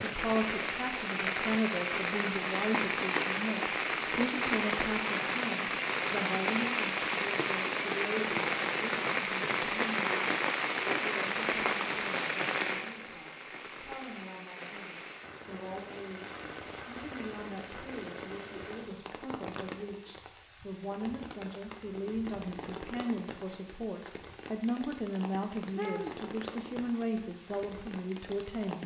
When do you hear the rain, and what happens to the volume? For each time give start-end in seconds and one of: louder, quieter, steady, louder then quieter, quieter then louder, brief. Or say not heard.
0.0-28.8 quieter.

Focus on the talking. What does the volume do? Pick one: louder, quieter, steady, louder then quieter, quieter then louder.
quieter then louder.